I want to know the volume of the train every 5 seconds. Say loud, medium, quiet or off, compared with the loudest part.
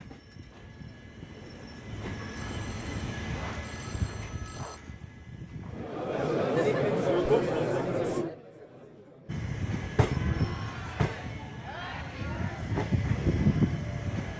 medium, medium, loud.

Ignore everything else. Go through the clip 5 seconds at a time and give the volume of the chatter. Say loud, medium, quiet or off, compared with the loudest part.
off, loud, quiet.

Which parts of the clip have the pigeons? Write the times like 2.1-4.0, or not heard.
not heard.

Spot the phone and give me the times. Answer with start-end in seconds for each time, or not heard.
2.4-4.8.